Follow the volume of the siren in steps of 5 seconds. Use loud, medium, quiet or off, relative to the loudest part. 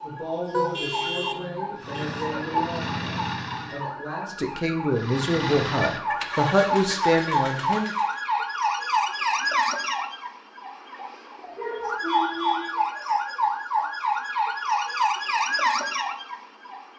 medium, loud, loud, loud.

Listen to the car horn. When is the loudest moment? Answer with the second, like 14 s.
1 s.